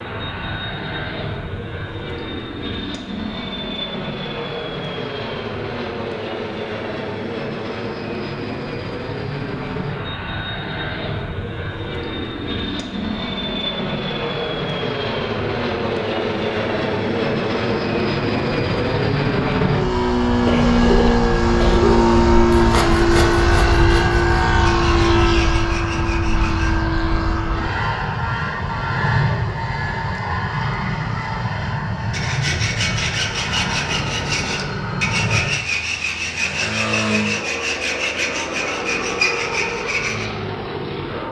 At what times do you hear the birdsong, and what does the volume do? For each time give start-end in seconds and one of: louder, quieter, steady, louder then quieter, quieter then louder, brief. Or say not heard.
not heard.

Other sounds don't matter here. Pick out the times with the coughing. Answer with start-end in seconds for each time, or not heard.
20.4-21.9.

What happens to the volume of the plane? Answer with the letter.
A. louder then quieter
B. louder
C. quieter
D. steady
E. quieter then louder
A.